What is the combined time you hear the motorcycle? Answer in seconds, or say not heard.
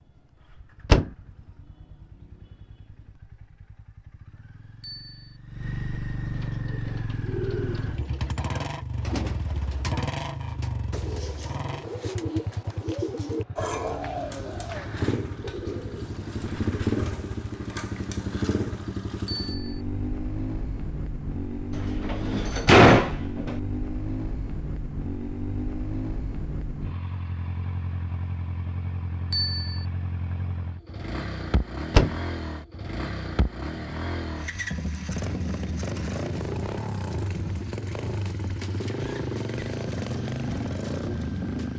42 s.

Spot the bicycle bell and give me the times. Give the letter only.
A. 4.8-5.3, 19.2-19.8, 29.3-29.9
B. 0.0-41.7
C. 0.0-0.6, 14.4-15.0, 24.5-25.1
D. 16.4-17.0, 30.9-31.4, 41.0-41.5
A.